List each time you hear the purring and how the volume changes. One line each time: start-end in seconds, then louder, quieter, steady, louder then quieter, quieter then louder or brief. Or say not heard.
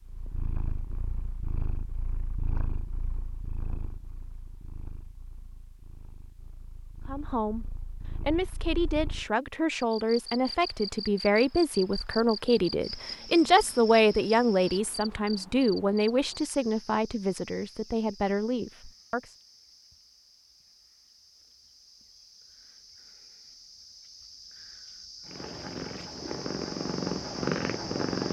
0.0-9.2 quieter then louder
25.2-28.2 brief.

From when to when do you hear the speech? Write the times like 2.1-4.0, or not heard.
7.0-19.4.